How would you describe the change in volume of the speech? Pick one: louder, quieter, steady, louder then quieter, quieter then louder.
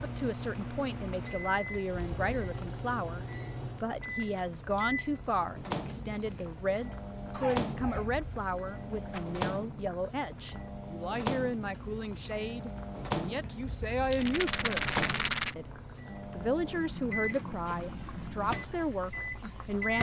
steady.